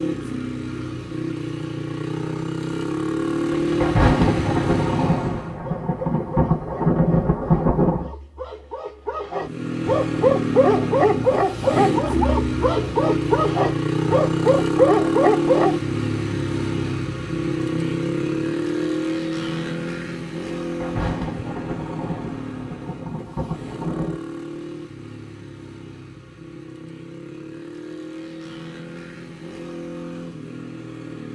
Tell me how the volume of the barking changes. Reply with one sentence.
The volume of the barking goes up.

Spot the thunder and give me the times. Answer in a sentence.
The thunder can be heard from 3.5 to 8.1 s and from 20.5 to 24.2 s.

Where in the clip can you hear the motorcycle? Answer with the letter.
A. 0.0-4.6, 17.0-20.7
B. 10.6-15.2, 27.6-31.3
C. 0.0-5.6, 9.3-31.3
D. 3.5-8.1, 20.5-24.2
C.